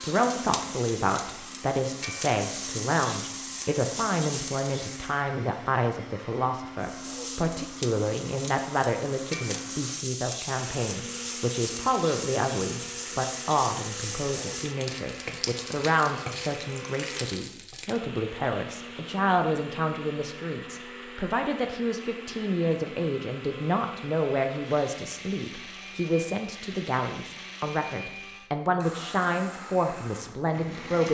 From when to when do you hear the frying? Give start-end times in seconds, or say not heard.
0.0-5.2, 6.8-18.0.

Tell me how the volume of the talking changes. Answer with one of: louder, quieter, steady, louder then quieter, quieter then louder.
steady.